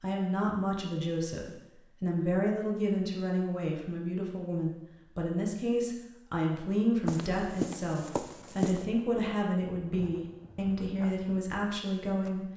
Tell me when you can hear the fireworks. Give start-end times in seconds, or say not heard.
not heard.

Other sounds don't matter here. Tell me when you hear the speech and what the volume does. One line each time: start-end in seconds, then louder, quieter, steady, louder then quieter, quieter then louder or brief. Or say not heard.
0.0-12.4 steady.